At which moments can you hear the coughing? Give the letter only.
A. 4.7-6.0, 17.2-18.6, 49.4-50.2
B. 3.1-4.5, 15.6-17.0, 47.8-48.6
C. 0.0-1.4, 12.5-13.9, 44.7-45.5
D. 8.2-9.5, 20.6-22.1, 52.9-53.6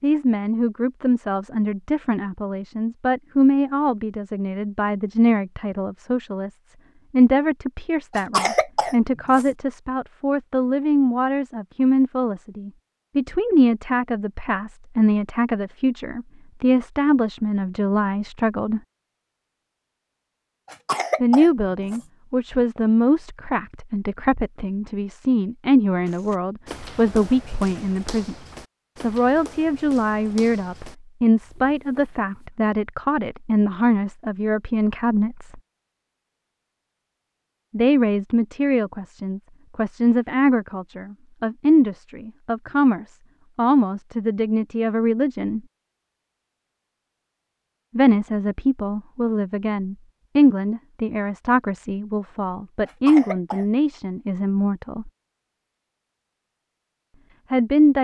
D.